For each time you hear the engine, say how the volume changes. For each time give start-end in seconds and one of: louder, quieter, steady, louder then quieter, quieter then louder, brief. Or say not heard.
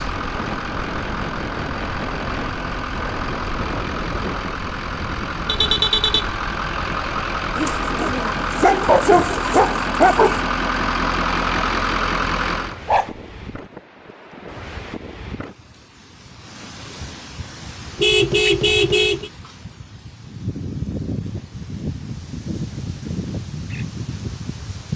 0.0-12.8 louder.